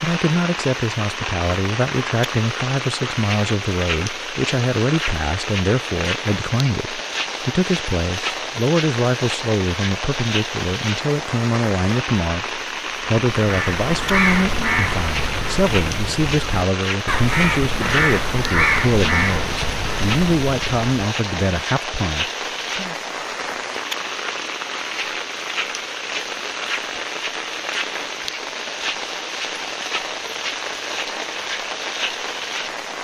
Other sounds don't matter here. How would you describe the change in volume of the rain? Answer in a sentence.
The loudness of the rain stays about the same.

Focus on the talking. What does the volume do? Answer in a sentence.
The loudness of the talking stays about the same.